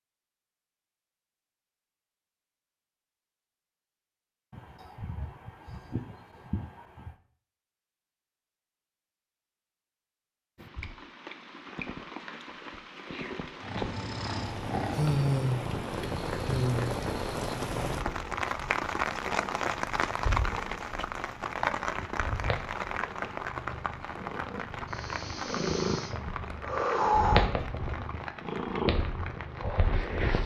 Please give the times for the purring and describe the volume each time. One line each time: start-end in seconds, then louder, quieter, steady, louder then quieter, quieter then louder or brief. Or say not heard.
13.6-30.4 quieter then louder.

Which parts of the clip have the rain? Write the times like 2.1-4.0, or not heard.
10.6-30.4.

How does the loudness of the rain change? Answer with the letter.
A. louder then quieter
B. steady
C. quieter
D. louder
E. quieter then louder
A.